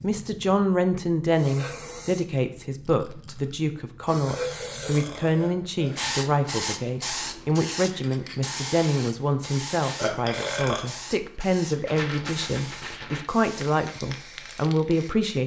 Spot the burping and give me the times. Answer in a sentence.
The burping can be heard from 4.2 to 6.2 s and from 9.9 to 10.8 s.